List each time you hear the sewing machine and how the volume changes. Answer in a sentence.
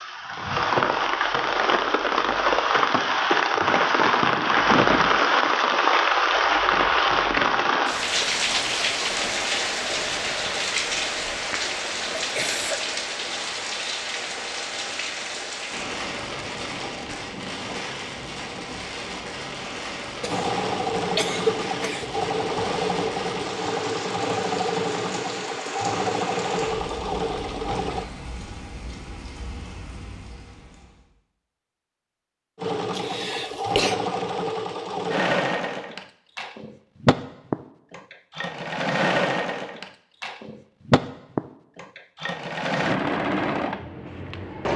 You can hear the sewing machine from 20.2 to 28.1 s, at a steady volume; and from 32.5 to 44.7 s, at a steady volume.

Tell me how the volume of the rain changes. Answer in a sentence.
The loudness of the rain goes down.